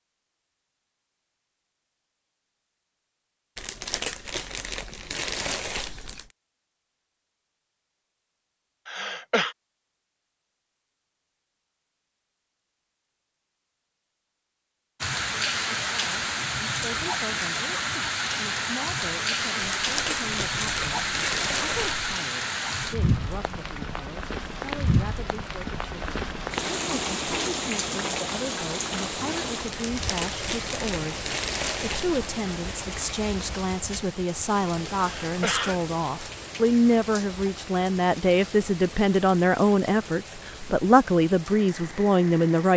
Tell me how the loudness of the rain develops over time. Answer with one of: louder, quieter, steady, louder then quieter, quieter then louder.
quieter.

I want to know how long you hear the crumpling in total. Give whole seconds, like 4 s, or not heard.
8 s.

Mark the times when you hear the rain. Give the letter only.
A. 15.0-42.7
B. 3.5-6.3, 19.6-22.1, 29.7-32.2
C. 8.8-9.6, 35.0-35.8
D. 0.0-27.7
A.